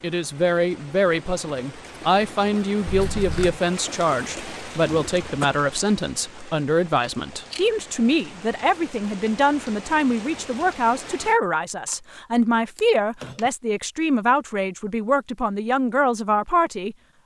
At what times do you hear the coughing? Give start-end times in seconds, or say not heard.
4.8-5.5.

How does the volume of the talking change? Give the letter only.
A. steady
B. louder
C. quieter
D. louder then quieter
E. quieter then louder
A.